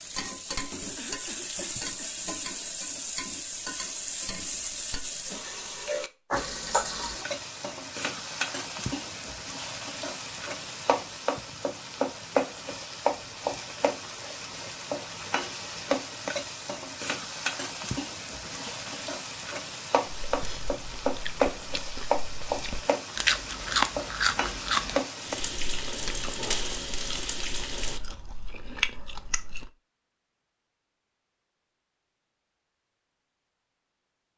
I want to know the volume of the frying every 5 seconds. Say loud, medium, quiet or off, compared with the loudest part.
loud, loud, loud, loud, loud, loud, off.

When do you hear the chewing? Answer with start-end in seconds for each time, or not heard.
20.1-29.7.